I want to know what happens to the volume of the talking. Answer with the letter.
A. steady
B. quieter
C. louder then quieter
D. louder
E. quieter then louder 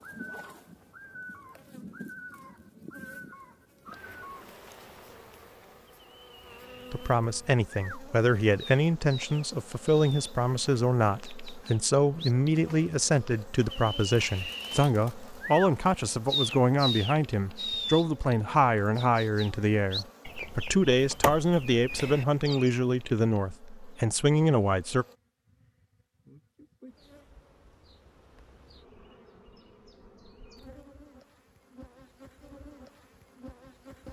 A.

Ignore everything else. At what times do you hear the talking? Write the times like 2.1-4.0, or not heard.
6.9-25.1.